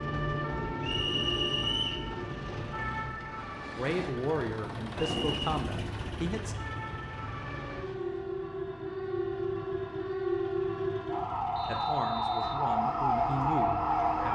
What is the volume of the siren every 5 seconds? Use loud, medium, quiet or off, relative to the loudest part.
medium, medium, loud.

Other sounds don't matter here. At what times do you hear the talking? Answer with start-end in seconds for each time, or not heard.
3.8-6.5, 11.7-14.3.